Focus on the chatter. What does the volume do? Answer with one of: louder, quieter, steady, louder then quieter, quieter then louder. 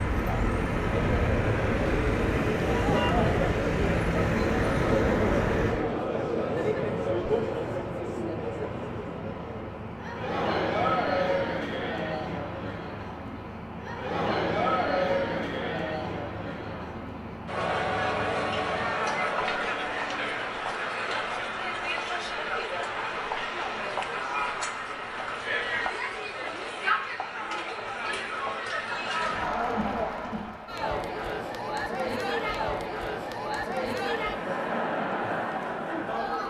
steady.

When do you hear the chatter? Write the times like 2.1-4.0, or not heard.
0.1-36.4.